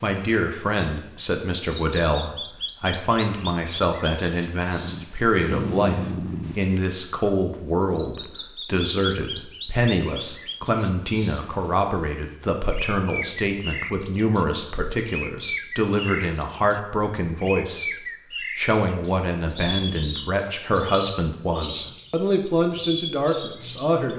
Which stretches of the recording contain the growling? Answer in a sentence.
You can hear the growling from 4.8 to 6.6 s.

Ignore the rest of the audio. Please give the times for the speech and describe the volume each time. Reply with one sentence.
The speech can be heard from 0.0 to 24.1 s, at a steady volume.